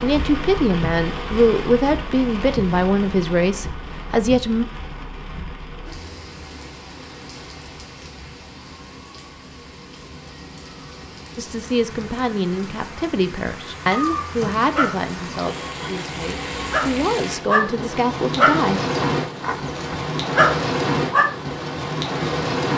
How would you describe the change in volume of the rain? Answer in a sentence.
The loudness of the rain goes down, then up.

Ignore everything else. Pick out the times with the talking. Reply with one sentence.
The talking can be heard from 0.0 to 4.7 s and from 11.3 to 18.8 s.